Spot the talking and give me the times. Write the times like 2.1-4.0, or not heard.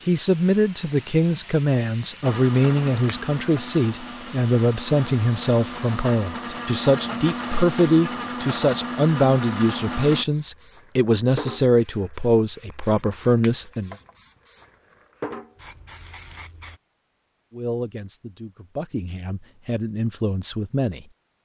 0.1-13.9, 17.5-21.1.